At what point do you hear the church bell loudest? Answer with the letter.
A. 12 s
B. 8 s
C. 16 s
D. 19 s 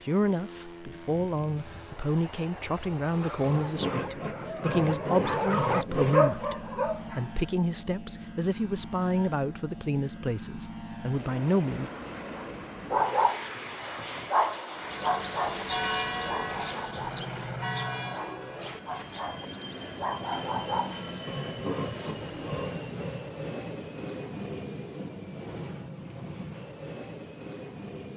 C.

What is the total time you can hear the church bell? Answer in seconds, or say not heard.
6 s.